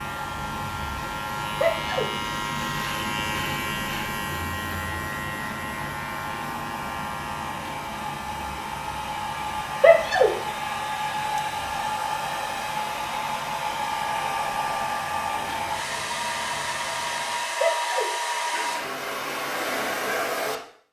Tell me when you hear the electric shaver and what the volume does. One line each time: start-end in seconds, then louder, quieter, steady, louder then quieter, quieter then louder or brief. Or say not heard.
0.0-17.6 quieter.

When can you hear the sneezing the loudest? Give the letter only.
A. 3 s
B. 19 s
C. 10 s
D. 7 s
C.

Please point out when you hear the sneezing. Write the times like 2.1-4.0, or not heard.
1.6-2.1, 9.8-10.3, 17.6-18.1.